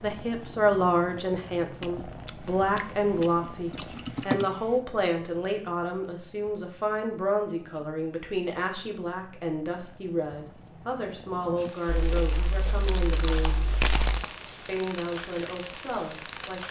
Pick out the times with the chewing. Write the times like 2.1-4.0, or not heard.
1.8-4.3, 12.1-14.4.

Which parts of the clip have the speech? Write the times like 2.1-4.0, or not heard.
0.0-13.6, 14.7-16.6.